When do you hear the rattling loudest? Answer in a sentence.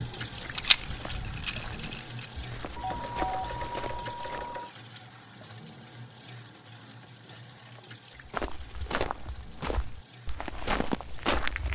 The loudest moment of the rattling is at 1 second.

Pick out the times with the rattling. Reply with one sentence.
You can hear the rattling from 0.5 to 2.4 s.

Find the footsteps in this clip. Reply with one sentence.
The footsteps can be heard from 0.1 to 4.6 s and from 8.2 to 11.6 s.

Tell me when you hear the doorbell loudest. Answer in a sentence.
The loudest moment of the doorbell is at 3 seconds.